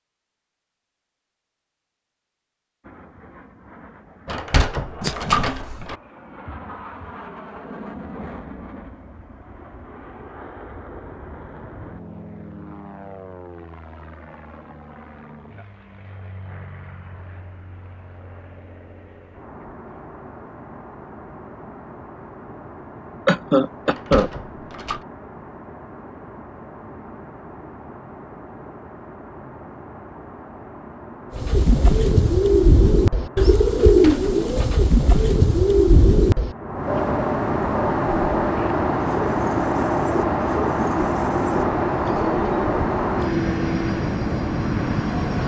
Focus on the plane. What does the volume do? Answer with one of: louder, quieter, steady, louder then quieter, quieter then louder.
louder.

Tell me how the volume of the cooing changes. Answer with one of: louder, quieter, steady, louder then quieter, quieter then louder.
quieter.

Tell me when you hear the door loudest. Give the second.
5 s.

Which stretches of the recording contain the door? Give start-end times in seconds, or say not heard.
4.2-6.0, 23.9-25.0, 33.8-34.4.